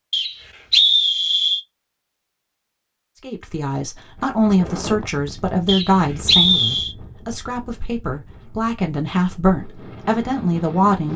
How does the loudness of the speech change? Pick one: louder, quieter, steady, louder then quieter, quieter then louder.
quieter then louder.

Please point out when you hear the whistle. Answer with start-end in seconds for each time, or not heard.
0.1-1.6, 5.7-7.0.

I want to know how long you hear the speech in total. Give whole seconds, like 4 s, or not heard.
8 s.